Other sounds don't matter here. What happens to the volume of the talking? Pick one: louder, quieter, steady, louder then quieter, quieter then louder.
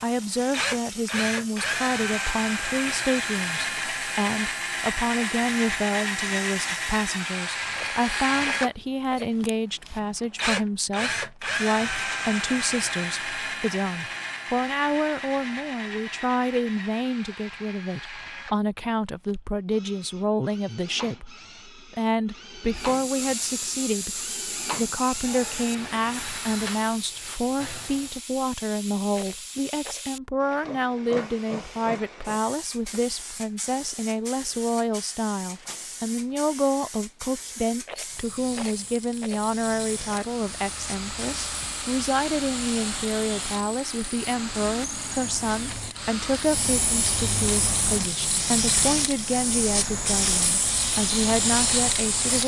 steady.